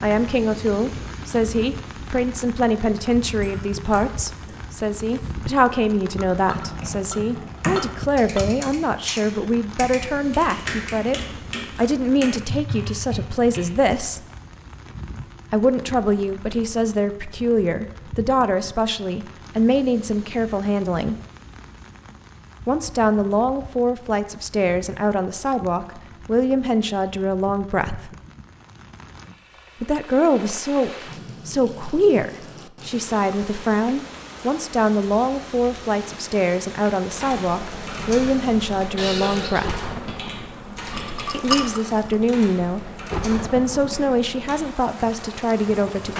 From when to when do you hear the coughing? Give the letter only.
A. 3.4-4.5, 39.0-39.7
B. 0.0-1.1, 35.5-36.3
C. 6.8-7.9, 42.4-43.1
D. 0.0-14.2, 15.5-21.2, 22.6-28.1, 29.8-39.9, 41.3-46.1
A.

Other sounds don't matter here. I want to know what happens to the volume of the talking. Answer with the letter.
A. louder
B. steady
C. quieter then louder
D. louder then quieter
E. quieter
B.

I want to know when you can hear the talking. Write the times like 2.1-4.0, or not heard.
0.0-14.2, 15.5-21.2, 22.6-28.1, 29.8-39.9, 41.3-46.1.